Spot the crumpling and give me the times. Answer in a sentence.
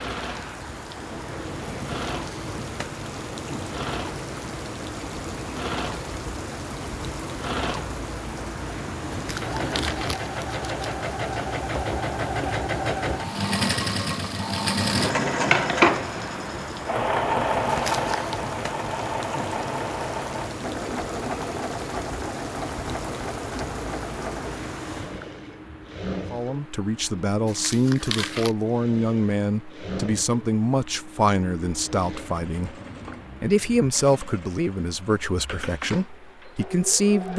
You can hear the crumpling from 9.1 to 10.9 s, from 17.6 to 18.4 s and from 27.4 to 28.6 s.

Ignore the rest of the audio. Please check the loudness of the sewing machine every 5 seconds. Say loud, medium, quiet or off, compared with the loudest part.
medium, medium, loud, loud, medium, quiet, quiet, quiet.